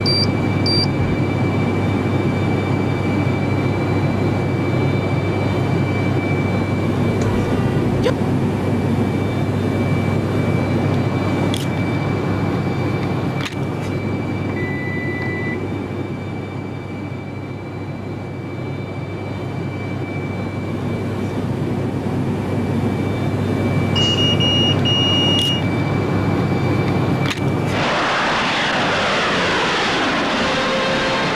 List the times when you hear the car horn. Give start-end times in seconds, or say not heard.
7.2-8.2.